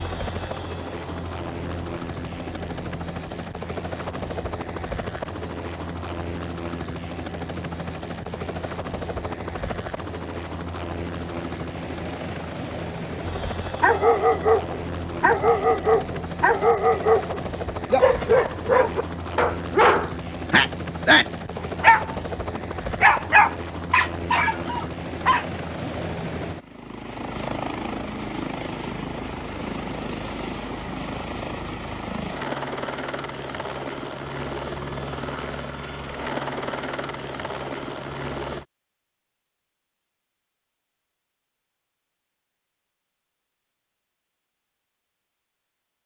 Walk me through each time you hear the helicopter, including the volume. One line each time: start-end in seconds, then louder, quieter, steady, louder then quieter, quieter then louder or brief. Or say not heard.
0.0-38.6 steady.